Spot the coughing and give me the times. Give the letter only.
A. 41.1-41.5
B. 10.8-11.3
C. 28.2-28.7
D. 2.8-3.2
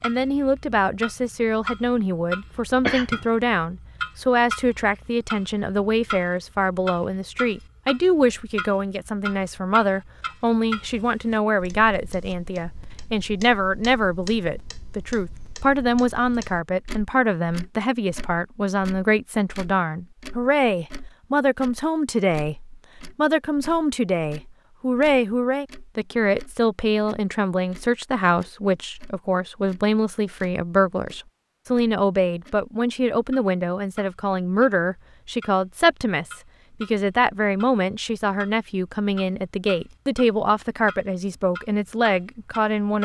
D.